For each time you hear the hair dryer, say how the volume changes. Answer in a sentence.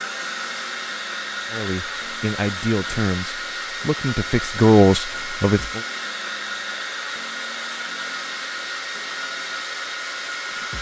You can hear the hair dryer from 0.0 to 10.7 s, at a steady volume.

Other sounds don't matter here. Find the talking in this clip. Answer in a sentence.
You can hear the talking from 1.5 to 5.8 s.